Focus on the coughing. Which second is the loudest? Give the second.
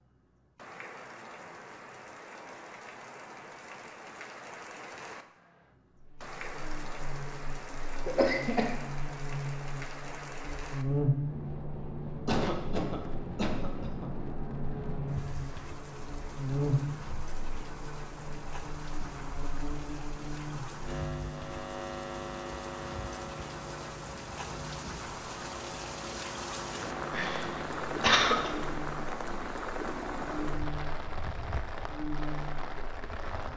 28 s.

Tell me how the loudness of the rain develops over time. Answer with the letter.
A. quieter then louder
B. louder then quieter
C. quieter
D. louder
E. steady
D.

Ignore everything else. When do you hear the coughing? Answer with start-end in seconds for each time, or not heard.
8.1-8.8, 12.2-14.1, 27.1-28.5.